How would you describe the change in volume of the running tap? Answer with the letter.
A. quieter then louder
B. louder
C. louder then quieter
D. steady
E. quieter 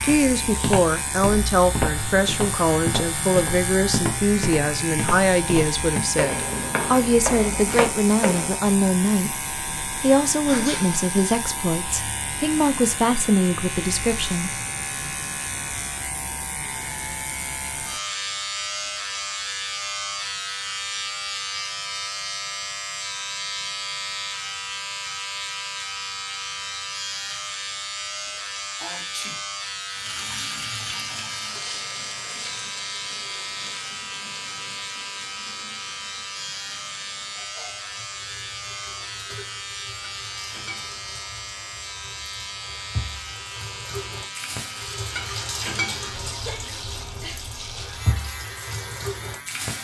A.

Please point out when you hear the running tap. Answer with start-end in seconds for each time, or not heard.
29.9-49.7.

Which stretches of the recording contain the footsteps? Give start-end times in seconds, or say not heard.
0.0-8.5.